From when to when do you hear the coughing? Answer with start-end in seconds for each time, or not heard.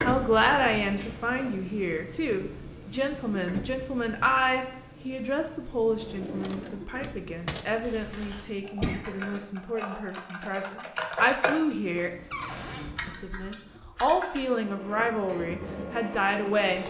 8.8-9.4.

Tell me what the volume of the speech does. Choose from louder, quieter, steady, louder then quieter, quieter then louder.
quieter then louder.